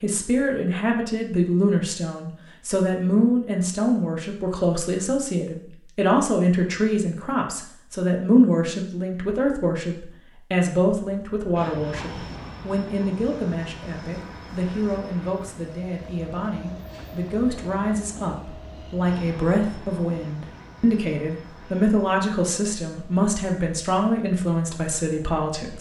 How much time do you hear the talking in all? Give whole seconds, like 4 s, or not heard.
26 s.